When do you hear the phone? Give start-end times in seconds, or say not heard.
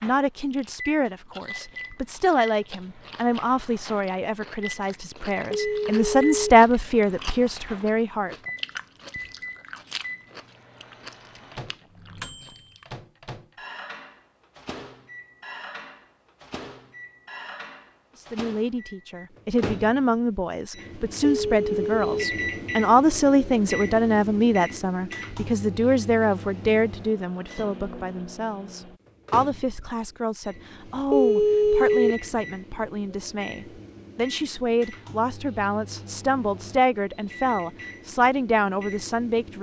5.5-6.5, 21.2-22.2, 31.1-32.1.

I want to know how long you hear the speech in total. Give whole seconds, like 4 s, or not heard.
30 s.